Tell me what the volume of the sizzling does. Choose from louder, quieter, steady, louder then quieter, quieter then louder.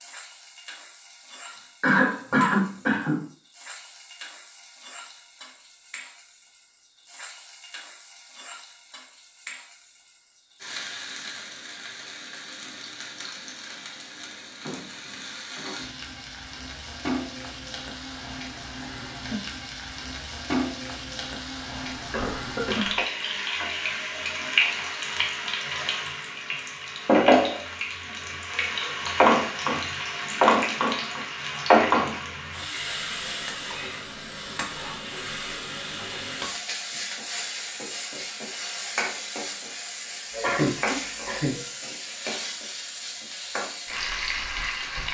louder then quieter.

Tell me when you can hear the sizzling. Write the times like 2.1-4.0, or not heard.
0.0-45.0.